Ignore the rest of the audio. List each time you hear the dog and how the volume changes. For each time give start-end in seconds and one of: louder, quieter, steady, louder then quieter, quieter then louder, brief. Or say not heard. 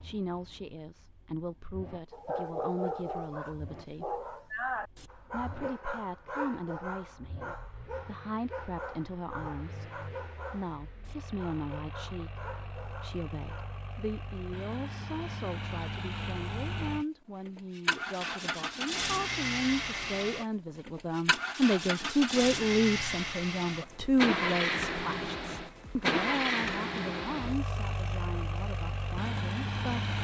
2.1-13.8 quieter.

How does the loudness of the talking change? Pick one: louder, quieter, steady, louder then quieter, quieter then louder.
louder then quieter.